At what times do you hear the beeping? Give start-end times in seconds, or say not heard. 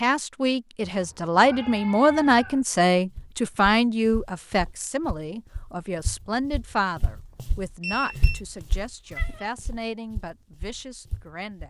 7.8-8.4.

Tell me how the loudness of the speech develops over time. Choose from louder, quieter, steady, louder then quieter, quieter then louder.
quieter.